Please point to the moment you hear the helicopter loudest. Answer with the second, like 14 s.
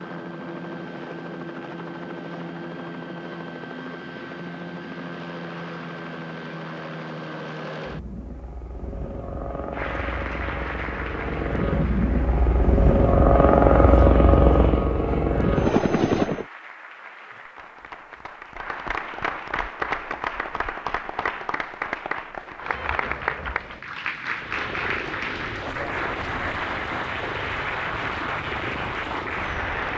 14 s.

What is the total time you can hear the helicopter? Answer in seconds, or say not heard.
22 s.